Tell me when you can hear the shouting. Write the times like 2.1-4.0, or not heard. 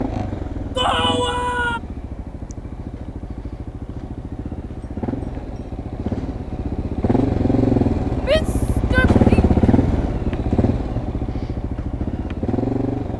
0.8-1.8, 8.2-9.2.